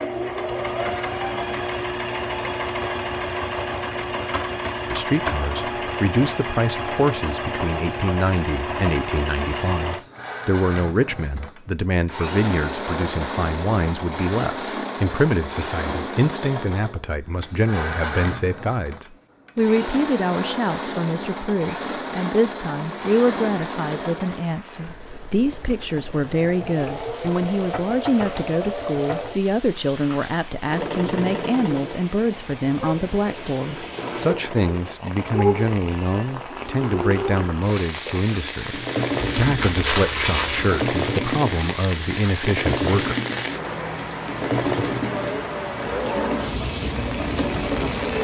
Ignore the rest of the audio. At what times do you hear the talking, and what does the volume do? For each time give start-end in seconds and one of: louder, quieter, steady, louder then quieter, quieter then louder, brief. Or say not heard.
4.8-43.1 steady.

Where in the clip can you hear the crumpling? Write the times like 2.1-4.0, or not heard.
39.1-40.7.